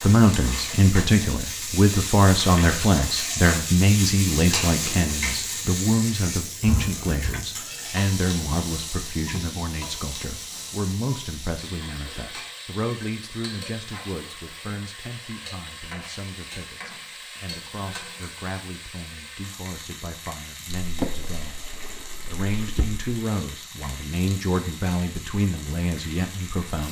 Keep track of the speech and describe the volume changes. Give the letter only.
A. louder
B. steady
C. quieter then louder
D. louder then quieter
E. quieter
C.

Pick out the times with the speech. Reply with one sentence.
The speech can be heard from 0.0 to 26.8 s.